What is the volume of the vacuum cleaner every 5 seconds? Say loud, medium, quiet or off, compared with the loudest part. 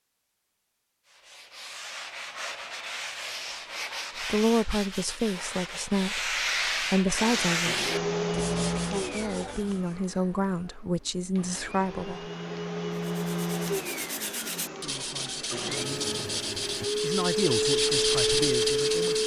off, loud, medium, loud.